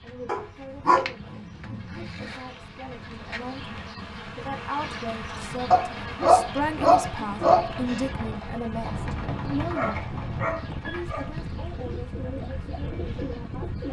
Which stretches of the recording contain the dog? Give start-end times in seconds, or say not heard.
0.2-2.2, 5.7-7.7, 9.7-11.3.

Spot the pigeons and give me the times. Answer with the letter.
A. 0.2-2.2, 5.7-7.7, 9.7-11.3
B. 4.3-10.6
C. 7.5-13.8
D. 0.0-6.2
C.